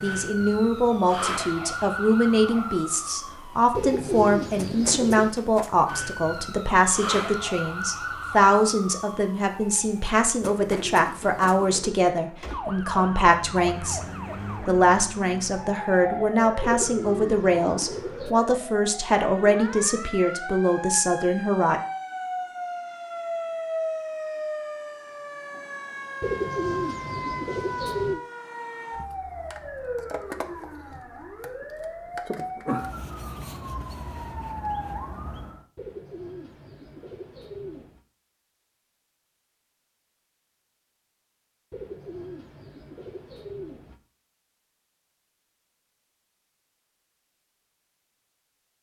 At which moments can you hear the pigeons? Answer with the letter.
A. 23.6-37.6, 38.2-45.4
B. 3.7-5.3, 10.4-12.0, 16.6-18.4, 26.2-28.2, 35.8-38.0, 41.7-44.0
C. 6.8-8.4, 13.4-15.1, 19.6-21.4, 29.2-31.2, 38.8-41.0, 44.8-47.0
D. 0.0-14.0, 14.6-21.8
B.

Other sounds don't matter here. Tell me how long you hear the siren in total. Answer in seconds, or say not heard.
36 s.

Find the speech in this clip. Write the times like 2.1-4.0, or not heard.
0.0-14.0, 14.6-21.8.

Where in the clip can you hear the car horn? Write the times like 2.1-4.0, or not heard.
not heard.